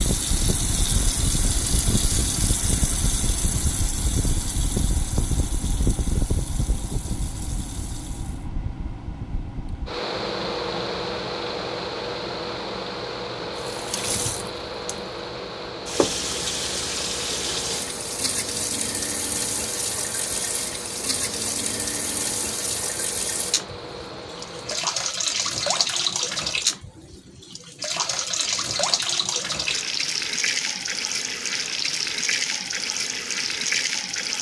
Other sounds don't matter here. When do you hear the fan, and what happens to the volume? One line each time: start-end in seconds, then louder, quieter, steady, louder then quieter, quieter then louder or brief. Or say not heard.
0.0-24.9 quieter.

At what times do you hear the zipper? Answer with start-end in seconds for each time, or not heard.
not heard.